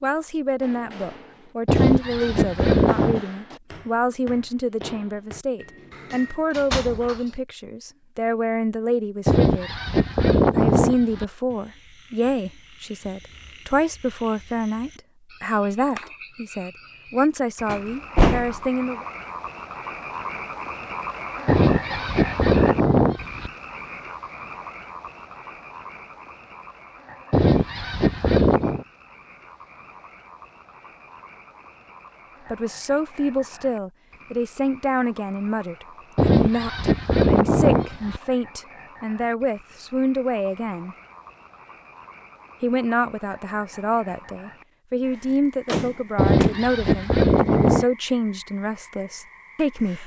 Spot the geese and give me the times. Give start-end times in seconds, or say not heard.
1.6-3.2, 9.2-11.2, 21.4-23.5, 27.3-28.9, 36.1-38.2, 46.1-47.9.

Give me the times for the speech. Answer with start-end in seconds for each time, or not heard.
0.0-9.7, 10.6-19.1, 32.5-41.0, 42.6-50.0.